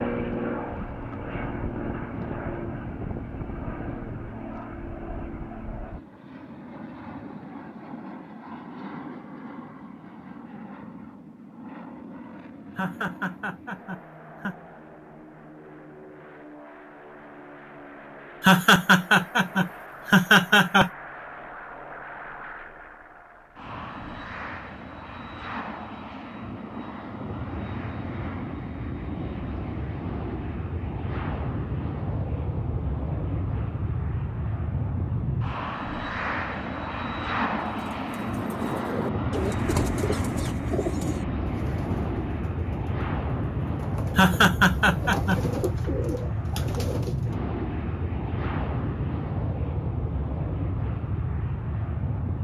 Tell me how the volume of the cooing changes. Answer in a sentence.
The loudness of the cooing goes down, then up.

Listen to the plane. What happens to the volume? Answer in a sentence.
The volume of the plane goes down, then up.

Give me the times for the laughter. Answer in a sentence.
The laughter can be heard from 12.8 to 14.6 s, from 18.4 to 20.9 s and from 44.1 to 45.4 s.